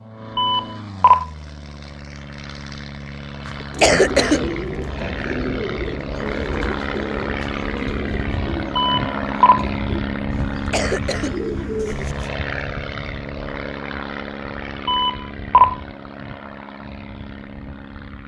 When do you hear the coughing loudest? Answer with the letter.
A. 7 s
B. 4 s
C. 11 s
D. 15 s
B.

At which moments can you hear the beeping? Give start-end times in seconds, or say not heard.
0.3-1.2, 8.8-9.7, 14.8-15.8.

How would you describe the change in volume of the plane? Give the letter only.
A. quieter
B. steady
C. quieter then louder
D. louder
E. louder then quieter
E.